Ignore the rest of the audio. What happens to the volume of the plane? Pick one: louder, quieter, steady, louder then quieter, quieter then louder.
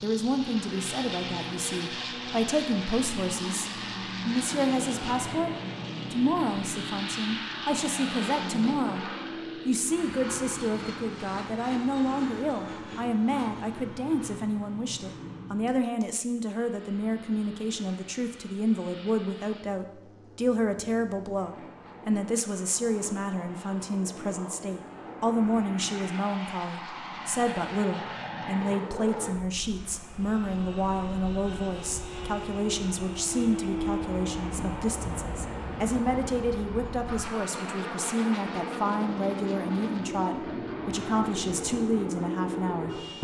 quieter then louder.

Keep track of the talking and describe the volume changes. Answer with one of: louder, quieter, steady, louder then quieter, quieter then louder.
steady.